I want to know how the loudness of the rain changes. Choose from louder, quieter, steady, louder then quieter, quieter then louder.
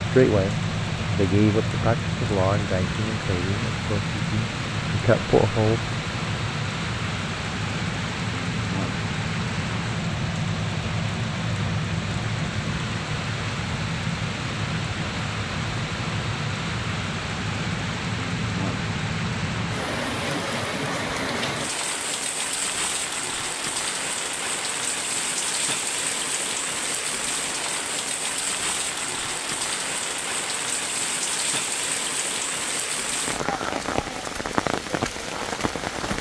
steady.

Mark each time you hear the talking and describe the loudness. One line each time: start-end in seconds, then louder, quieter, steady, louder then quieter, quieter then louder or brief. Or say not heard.
0.0-5.8 quieter then louder.